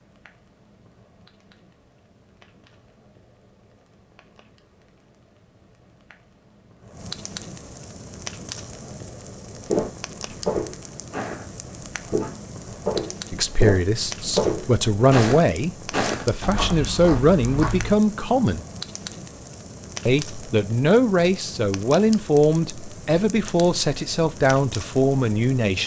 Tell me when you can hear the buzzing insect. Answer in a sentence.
The buzzing insect can't be heard in this clip.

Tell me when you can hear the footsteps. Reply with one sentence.
You can hear the footsteps from 9.7 to 18.0 s.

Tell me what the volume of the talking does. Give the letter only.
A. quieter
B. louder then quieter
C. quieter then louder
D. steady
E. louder
D.